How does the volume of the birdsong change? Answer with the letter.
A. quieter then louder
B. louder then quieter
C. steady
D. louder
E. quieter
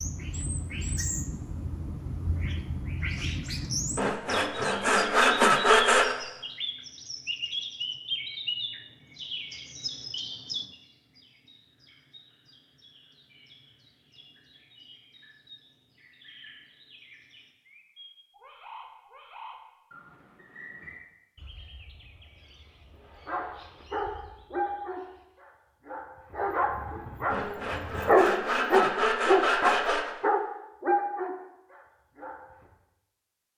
E.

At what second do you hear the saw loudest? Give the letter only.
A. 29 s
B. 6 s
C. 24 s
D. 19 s
B.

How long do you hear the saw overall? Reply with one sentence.
The saw can be heard for 5 seconds in total.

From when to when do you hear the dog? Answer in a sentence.
The dog can be heard from 23.2 to 32.7 s.